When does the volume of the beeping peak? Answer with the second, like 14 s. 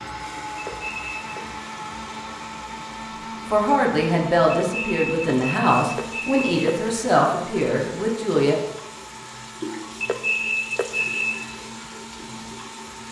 10 s.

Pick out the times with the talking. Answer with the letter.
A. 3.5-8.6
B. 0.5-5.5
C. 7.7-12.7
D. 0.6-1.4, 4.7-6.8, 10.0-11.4
A.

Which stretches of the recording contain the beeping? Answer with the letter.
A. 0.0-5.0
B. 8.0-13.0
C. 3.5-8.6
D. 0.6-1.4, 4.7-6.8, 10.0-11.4
D.